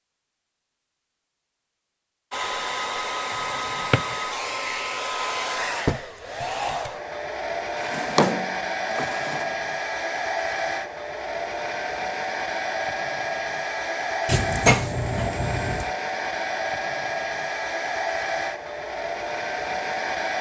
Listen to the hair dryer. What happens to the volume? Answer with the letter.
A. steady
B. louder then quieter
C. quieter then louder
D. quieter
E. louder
A.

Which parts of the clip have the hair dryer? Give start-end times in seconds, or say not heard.
2.3-20.3.